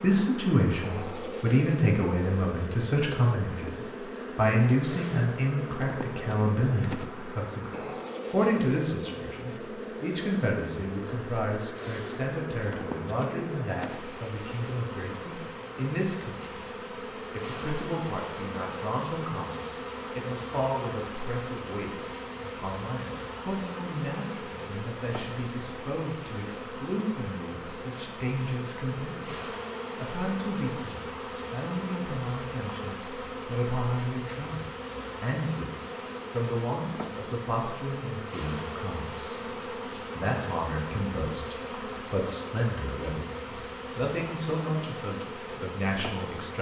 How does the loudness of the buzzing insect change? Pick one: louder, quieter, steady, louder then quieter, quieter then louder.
steady.